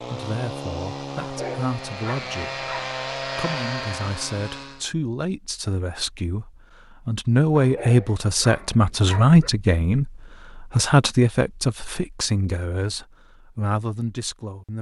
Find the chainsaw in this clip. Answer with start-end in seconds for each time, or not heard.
0.0-4.8.